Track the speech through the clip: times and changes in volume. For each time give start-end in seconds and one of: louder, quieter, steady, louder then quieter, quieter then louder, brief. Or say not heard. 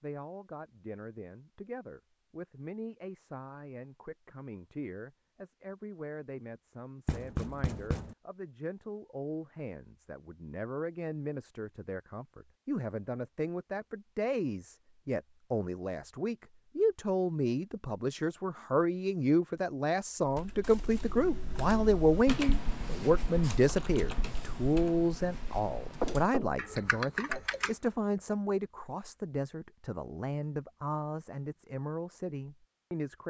0.0-33.2 louder then quieter.